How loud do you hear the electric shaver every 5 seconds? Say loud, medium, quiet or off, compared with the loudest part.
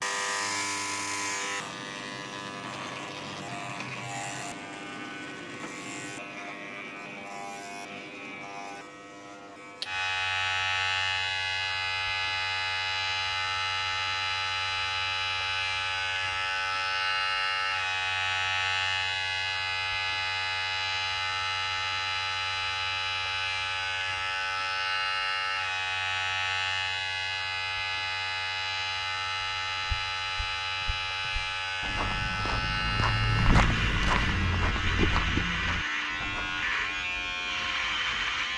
medium, medium, loud, loud, loud, loud, loud, loud.